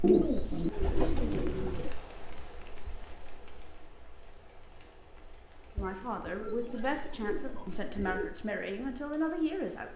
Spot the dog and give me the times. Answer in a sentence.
You can't hear the dog here.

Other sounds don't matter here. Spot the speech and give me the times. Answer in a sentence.
The speech can be heard from 5.8 to 9.9 s.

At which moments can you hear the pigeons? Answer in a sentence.
You can hear the pigeons from 0.0 to 1.9 s and from 5.8 to 8.3 s.